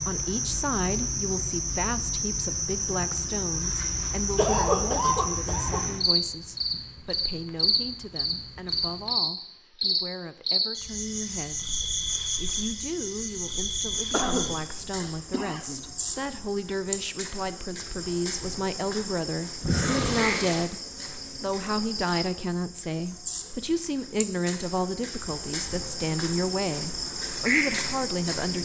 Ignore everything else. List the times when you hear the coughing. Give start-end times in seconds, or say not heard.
4.3-5.8, 14.1-15.8, 19.6-20.6.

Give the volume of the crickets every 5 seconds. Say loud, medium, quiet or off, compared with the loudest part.
loud, loud, loud, medium, medium, loud.